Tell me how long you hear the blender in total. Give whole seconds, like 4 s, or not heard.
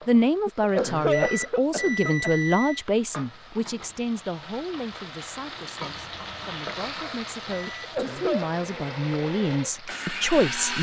3 s.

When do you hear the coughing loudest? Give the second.
1 s.